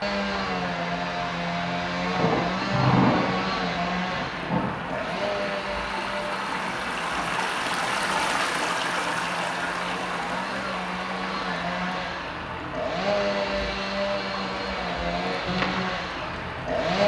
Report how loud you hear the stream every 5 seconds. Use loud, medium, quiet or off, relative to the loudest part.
medium, loud, medium, medium.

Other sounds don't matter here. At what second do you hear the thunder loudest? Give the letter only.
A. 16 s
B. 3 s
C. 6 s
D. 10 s
B.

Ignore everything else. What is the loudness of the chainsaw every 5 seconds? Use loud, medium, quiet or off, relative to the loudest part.
loud, medium, loud, loud.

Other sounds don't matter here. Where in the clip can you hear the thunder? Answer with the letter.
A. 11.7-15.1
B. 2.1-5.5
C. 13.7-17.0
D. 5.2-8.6
B.